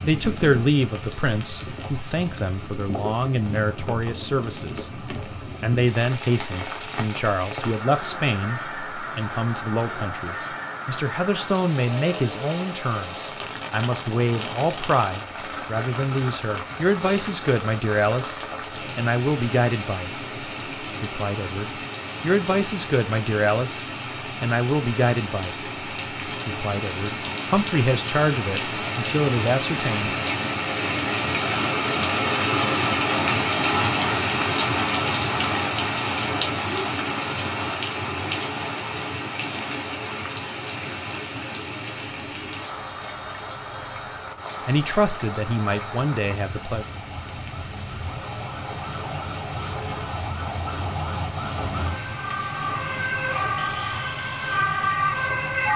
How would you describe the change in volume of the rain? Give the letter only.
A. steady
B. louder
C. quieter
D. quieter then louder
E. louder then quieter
E.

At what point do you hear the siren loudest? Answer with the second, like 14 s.
55 s.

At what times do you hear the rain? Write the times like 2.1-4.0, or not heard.
0.0-55.7.